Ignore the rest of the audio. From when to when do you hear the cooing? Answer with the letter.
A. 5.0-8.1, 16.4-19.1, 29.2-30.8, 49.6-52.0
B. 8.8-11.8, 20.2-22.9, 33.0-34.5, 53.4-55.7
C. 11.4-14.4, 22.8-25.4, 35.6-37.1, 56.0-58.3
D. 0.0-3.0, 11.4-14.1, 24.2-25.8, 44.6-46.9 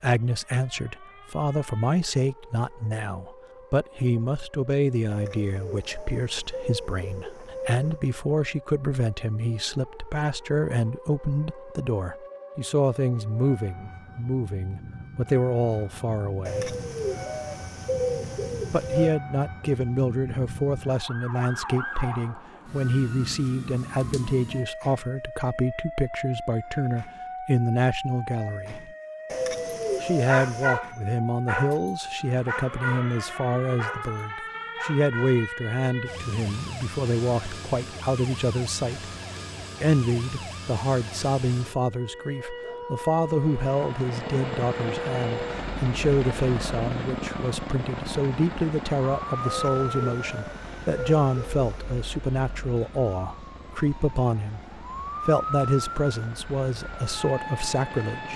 A.